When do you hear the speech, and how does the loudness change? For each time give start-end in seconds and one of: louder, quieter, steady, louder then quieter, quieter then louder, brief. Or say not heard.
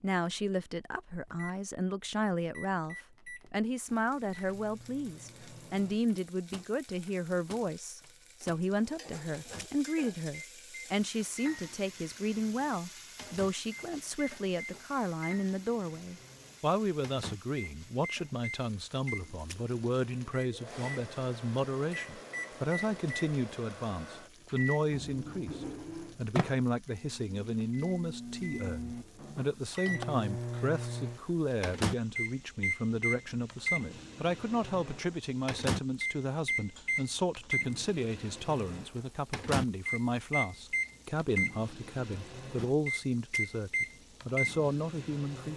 0.0-45.5 steady.